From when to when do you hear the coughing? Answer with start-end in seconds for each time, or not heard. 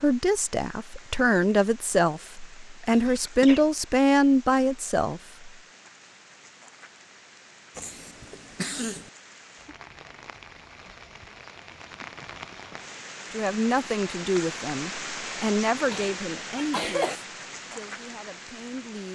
2.9-3.7, 7.8-9.1, 15.9-17.2.